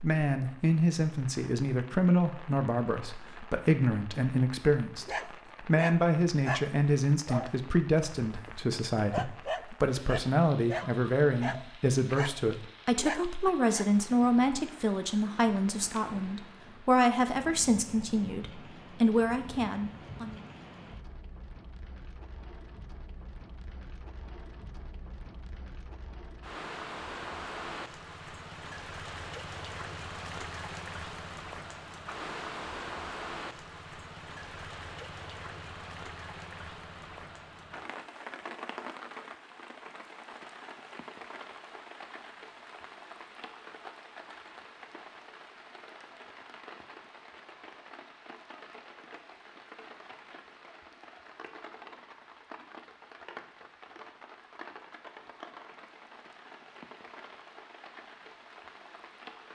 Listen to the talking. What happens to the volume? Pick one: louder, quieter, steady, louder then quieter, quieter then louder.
steady.